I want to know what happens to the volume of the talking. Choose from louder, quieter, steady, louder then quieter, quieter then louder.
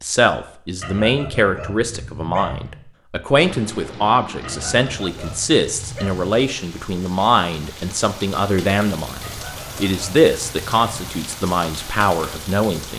steady.